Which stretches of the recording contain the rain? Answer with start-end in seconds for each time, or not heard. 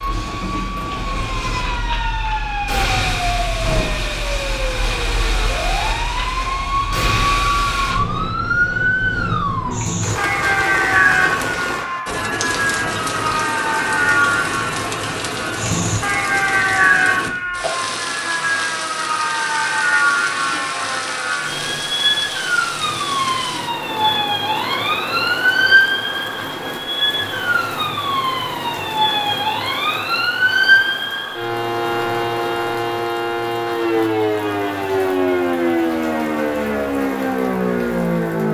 10.0-38.4.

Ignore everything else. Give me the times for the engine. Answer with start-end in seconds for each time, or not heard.
0.0-2.0.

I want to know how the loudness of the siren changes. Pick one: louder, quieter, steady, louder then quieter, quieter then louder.
steady.